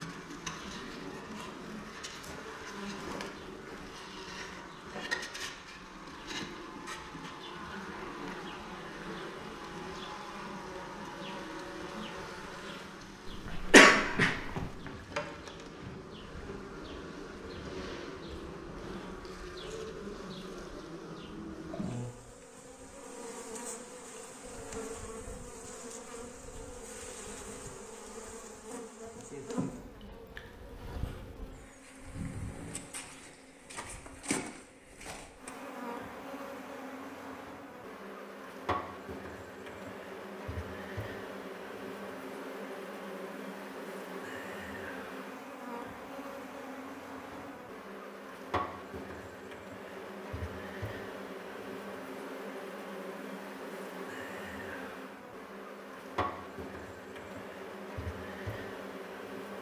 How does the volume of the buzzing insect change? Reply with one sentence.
The loudness of the buzzing insect stays about the same.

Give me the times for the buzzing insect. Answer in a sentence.
The buzzing insect can be heard from 0.0 to 59.5 s.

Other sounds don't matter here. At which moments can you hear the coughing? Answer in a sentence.
The coughing can be heard from 13.2 to 14.7 s.